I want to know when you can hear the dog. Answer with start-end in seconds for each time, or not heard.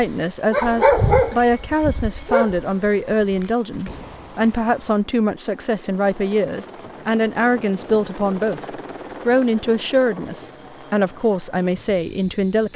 0.0-3.5.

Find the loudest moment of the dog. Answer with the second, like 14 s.
1 s.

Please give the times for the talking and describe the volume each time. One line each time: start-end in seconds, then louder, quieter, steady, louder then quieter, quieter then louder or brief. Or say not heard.
0.0-12.7 steady.